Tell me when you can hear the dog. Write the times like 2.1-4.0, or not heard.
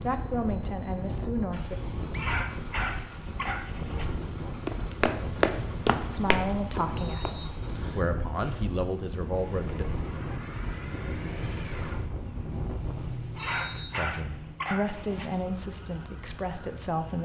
2.1-4.0, 13.3-15.2.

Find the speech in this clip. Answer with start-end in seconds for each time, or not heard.
0.0-1.8, 6.1-9.8, 13.7-17.2.